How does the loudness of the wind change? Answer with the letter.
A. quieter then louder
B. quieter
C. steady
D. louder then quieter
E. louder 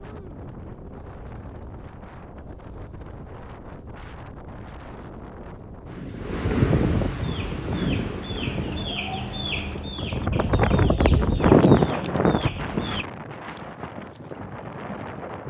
D.